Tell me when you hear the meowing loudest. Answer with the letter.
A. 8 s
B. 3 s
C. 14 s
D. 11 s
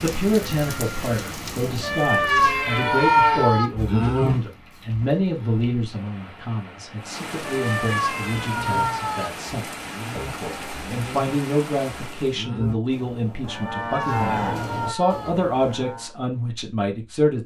B.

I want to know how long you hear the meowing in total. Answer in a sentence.
You can hear the meowing for 6 seconds altogether.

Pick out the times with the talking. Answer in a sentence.
The talking can be heard from 0.0 to 17.4 s.